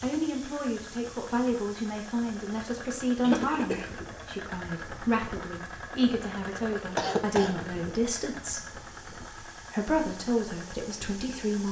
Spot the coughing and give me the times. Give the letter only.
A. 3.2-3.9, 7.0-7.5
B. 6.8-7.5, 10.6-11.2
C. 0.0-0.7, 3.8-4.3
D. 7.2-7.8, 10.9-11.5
A.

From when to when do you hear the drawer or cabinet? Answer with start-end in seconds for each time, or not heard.
not heard.